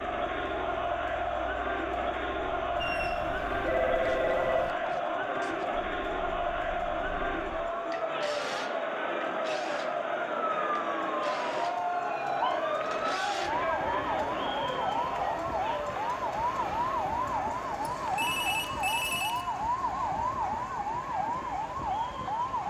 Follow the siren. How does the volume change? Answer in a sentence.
The loudness of the siren goes up.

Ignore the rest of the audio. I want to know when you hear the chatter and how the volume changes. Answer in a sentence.
The chatter can be heard from 0.0 to 22.6 s, getting quieter.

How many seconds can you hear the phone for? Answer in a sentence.
The phone can be heard for 5 seconds in total.